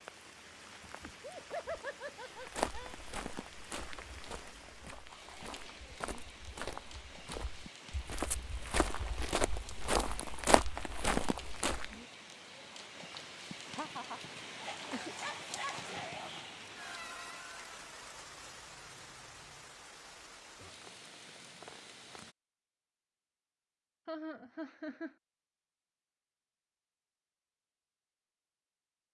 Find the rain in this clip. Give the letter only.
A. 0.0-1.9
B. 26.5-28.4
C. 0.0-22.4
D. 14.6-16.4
C.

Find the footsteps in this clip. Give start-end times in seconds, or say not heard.
2.4-11.9.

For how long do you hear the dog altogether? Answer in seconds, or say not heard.
2 s.